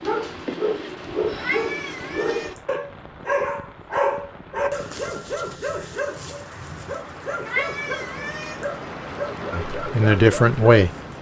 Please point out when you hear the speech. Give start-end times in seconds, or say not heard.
9.5-10.9.